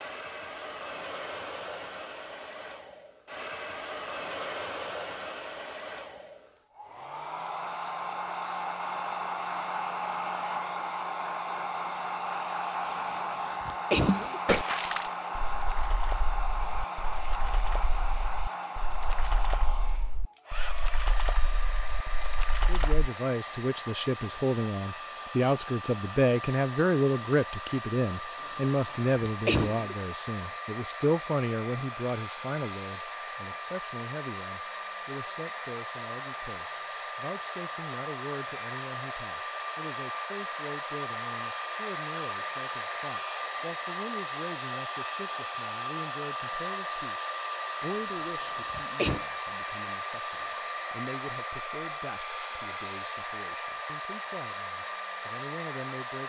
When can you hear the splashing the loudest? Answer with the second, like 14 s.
15 s.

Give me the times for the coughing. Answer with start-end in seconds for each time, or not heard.
12.8-14.4, 28.4-29.9, 47.9-49.2.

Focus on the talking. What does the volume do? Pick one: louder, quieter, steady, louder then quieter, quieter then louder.
quieter.